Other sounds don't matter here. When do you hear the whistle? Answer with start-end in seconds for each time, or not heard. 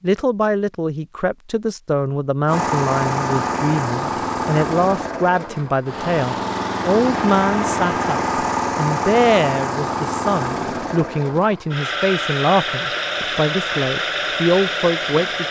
not heard.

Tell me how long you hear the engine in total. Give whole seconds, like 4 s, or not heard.
13 s.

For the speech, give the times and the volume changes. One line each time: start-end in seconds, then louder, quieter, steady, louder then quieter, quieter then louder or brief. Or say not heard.
0.0-15.4 steady.